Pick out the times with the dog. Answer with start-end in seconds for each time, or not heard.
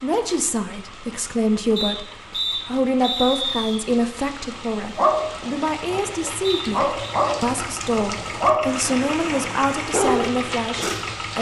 4.8-11.1.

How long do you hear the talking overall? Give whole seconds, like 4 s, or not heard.
11 s.